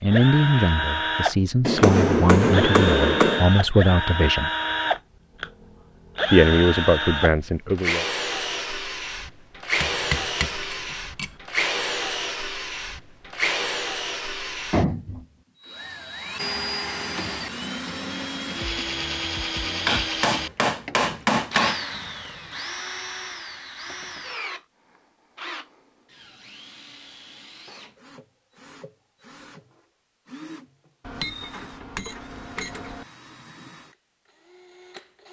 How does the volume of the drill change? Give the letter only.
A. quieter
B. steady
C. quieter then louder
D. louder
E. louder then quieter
A.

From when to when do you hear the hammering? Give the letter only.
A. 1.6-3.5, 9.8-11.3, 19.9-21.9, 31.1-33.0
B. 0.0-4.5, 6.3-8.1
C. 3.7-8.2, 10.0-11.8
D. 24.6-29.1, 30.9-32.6
A.